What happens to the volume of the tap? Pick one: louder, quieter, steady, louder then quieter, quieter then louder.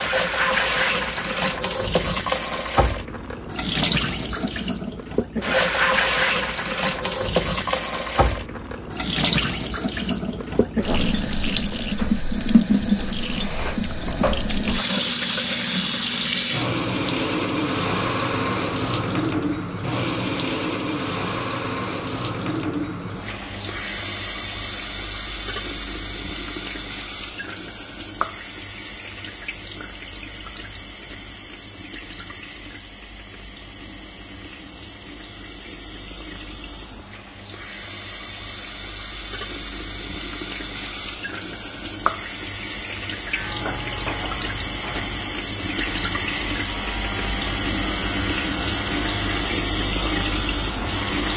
quieter then louder.